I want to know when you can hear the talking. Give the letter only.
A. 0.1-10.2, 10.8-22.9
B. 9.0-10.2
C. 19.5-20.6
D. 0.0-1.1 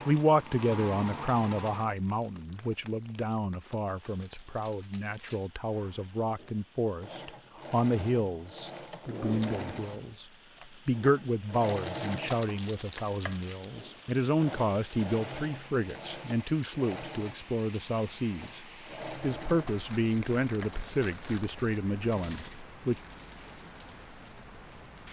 A.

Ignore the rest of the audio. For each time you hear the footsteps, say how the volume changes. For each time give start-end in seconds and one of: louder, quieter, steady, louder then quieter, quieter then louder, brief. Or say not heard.
not heard.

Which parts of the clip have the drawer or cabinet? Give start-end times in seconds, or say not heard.
9.0-10.2.